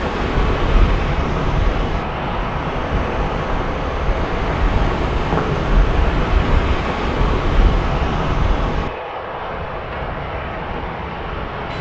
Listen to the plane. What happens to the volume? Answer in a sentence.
The loudness of the plane stays about the same.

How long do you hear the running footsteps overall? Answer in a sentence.
The running footsteps can't be heard in this clip.